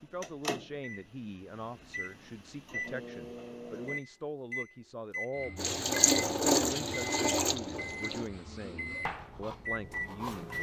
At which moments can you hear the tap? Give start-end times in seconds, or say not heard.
5.5-8.3.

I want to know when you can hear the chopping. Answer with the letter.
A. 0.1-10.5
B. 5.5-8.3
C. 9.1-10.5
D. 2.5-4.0
C.